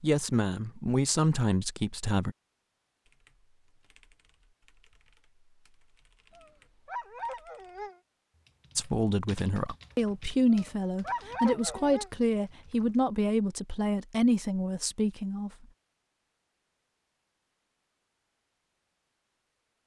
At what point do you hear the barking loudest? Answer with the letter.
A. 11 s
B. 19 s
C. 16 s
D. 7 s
A.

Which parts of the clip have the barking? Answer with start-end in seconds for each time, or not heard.
6.3-8.0, 10.5-12.1.